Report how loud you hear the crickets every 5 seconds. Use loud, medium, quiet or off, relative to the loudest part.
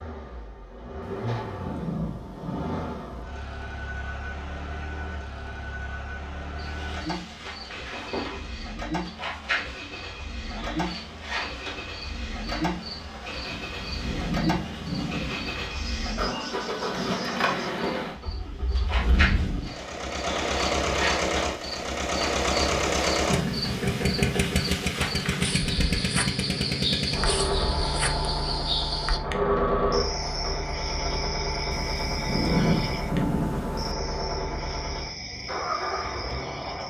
off, medium, medium, medium, loud, loud, medium, medium.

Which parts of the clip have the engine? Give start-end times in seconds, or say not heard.
0.0-36.8.